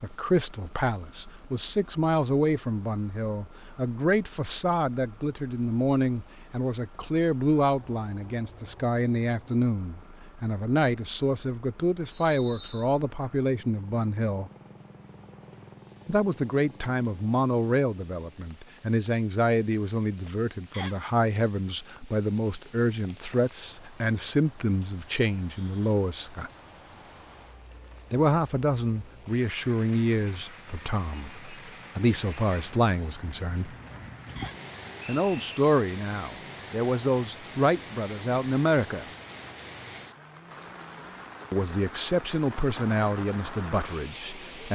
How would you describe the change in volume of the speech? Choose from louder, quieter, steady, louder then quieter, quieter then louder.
steady.